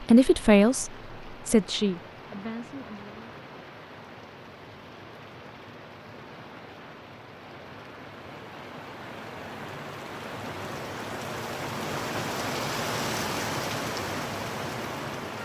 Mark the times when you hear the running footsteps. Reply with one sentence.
The running footsteps can't be heard in this clip.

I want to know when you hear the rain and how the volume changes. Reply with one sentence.
You can hear the rain from 0.0 to 15.3 s, getting louder.